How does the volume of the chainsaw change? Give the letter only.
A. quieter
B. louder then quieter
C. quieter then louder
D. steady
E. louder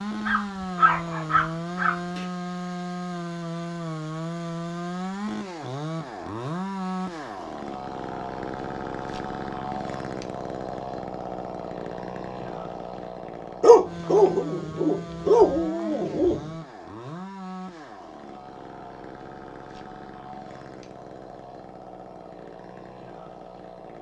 A.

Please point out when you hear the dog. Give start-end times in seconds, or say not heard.
0.2-2.2, 13.6-16.4.